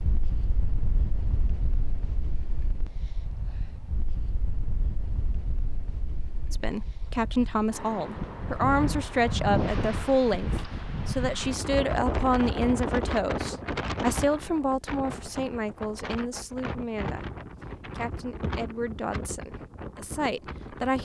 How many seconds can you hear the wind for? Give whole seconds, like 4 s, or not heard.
21 s.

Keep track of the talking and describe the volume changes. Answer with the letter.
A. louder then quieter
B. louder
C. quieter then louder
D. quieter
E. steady
D.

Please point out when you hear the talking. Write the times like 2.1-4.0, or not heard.
6.5-21.0.